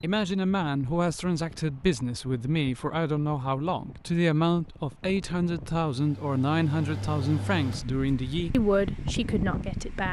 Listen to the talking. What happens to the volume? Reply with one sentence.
The volume of the talking stays about the same.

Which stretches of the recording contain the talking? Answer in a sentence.
The talking can be heard from 0.0 to 10.0 s.